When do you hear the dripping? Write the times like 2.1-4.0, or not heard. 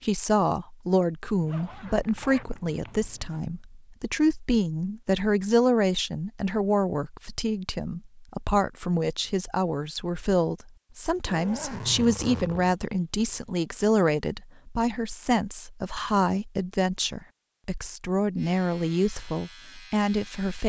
not heard.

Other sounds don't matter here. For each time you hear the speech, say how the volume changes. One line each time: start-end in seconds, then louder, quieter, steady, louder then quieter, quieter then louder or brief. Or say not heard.
0.0-20.6 steady.